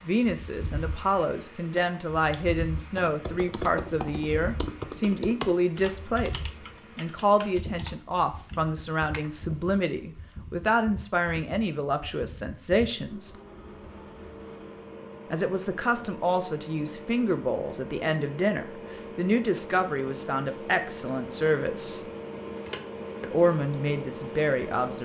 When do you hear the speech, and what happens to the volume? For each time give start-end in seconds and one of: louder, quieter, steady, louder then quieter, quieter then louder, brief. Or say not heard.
0.1-13.3 steady
15.3-22.0 steady
23.2-25.0 brief.